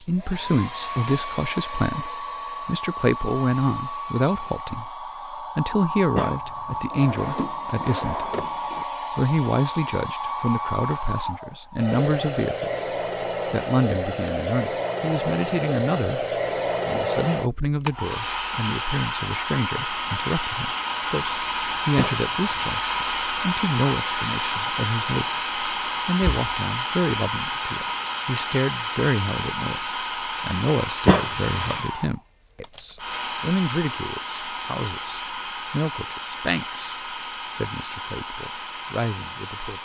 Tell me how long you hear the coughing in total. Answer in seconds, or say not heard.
2 s.